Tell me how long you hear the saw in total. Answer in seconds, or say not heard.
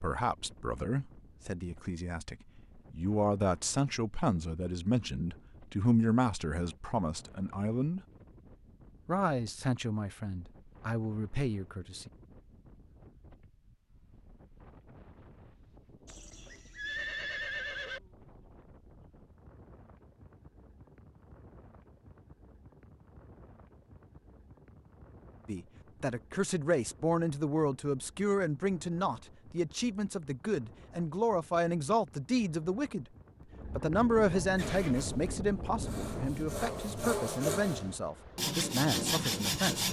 5 s.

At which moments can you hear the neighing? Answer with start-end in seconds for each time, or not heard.
16.1-18.0, 34.5-35.1.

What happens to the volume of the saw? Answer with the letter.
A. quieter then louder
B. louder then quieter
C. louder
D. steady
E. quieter
C.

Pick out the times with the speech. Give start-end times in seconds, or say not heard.
0.0-8.0, 9.1-12.1, 25.4-33.0, 33.6-39.8.